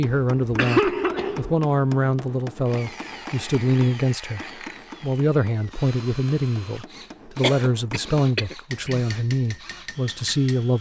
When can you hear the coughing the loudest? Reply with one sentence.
The volume of the coughing peaks at 1 second.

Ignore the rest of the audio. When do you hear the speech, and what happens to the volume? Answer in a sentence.
The speech can be heard from 0.0 to 10.7 s, at a steady volume.